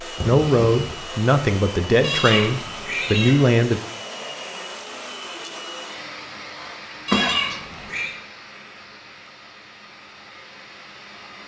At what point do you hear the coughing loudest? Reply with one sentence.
The volume of the coughing peaks at 7 seconds.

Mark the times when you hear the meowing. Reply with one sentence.
The meowing can be heard from 2.0 to 3.4 s and from 7.0 to 8.2 s.